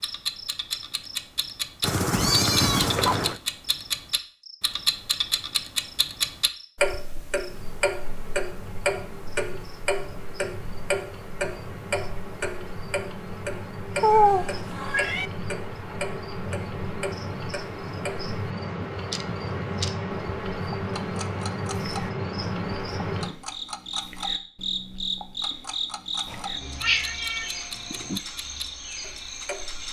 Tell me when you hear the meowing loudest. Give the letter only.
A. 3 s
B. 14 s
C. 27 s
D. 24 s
B.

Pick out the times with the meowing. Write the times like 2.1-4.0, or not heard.
1.8-3.4, 14.0-15.3, 26.2-28.2.